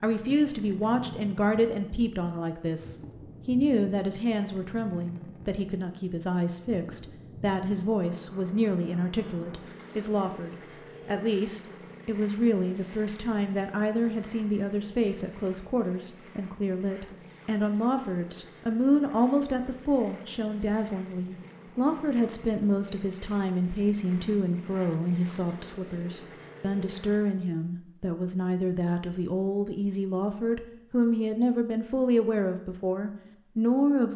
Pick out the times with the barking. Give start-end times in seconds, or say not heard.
not heard.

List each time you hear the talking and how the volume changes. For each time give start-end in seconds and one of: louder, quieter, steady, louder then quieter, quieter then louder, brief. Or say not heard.
0.0-34.1 steady.